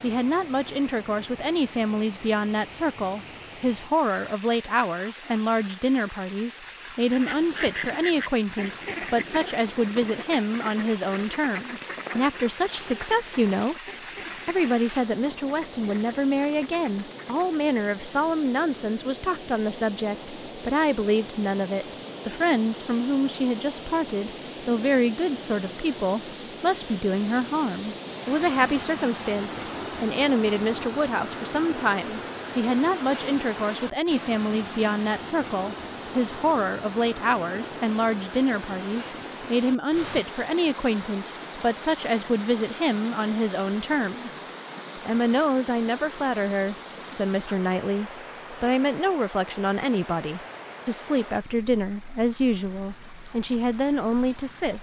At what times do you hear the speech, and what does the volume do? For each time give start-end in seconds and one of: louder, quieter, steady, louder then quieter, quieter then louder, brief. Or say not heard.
0.0-13.8 steady
14.4-54.7 steady.